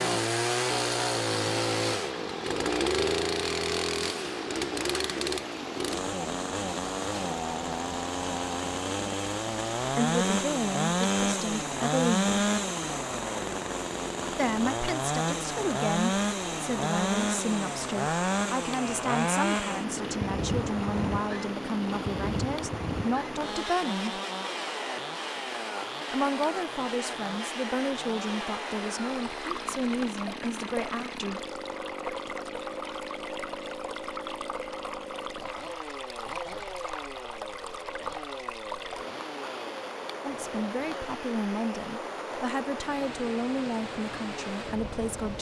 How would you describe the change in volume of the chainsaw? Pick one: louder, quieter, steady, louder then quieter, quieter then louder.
quieter.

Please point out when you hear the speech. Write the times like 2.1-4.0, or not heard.
9.8-12.2, 14.3-24.2, 26.1-31.4, 40.2-45.3.